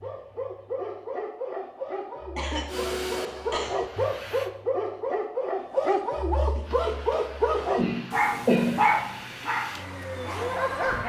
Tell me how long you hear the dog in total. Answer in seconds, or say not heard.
11 s.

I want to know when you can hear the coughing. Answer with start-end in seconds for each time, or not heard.
2.4-3.8, 7.8-8.8.